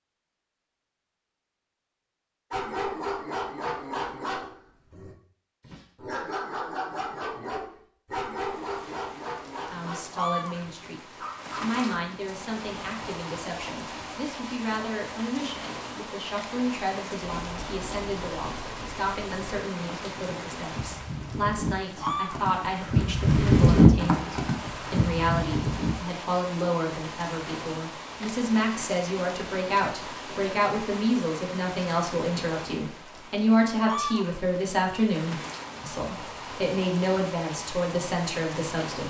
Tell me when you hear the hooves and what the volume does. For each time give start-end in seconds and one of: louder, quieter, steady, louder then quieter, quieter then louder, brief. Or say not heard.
17.2-25.9 louder then quieter.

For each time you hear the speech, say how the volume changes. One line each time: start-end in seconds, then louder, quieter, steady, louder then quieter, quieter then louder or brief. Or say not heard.
9.7-39.0 louder.